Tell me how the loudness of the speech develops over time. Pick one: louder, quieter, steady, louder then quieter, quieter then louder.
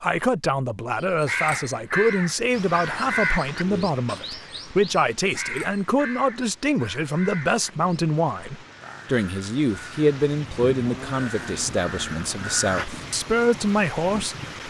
steady.